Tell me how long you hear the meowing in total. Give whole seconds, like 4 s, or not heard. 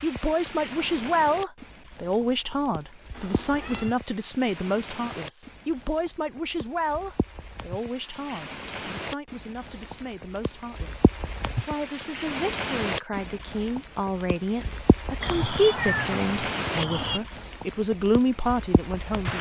3 s.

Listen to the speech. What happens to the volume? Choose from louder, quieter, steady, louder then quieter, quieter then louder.
quieter then louder.